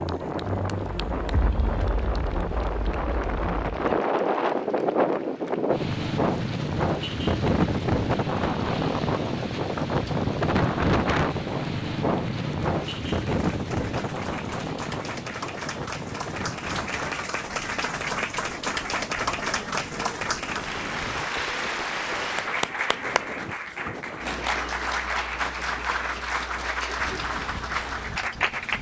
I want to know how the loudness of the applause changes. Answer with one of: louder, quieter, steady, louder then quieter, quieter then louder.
louder.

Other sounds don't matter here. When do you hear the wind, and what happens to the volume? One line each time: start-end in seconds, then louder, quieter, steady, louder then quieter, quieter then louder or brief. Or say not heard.
0.0-28.7 quieter.